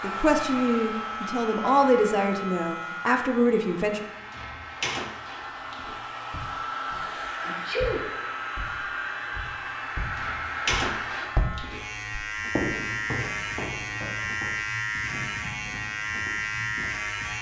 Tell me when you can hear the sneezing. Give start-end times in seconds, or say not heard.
7.5-8.1.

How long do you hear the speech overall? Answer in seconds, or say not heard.
4 s.